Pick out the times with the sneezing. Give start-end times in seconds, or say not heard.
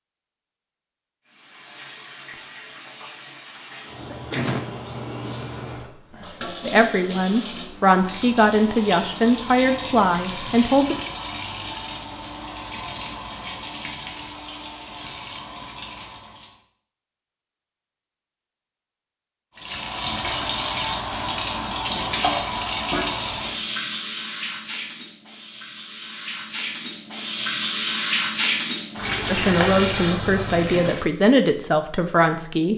4.0-4.7, 30.6-31.1.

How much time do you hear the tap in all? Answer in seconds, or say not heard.
27 s.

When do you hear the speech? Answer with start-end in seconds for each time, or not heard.
6.7-10.9, 29.2-32.7.